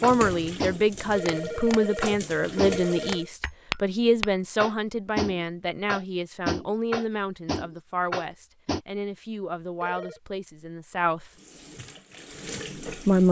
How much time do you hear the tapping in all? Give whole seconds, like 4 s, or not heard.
9 s.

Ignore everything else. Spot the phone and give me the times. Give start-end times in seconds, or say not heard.
1.1-3.3, 9.6-10.2.